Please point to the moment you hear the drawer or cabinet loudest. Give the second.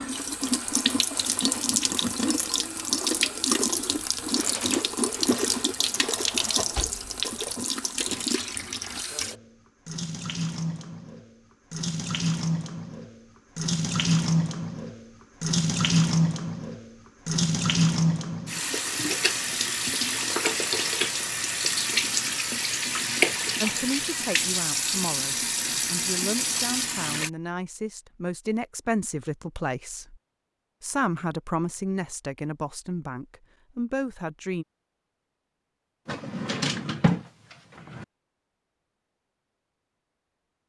37 s.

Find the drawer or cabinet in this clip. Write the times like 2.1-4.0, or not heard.
6.0-7.5, 36.0-38.0.